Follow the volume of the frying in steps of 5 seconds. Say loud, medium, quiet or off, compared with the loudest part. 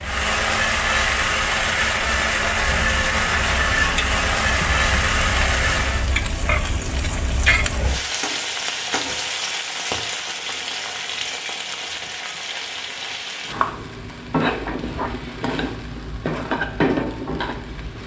medium, loud, loud, loud.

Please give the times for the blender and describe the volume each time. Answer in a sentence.
You can hear the blender from 0.0 to 6.1 s, at a steady volume.